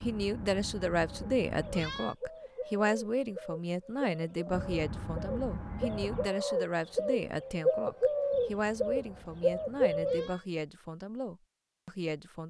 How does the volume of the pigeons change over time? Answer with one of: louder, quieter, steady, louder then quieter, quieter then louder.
louder.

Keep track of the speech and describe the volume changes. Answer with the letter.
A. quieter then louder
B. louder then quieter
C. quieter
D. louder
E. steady
C.